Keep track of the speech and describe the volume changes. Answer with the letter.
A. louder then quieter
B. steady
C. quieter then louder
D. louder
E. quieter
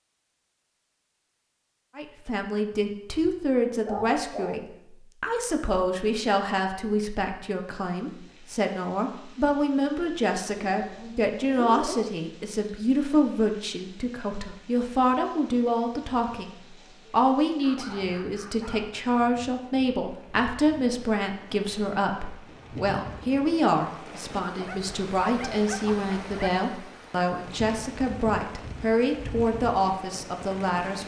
B.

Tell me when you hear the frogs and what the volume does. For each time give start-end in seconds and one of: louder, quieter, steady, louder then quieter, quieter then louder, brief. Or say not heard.
not heard.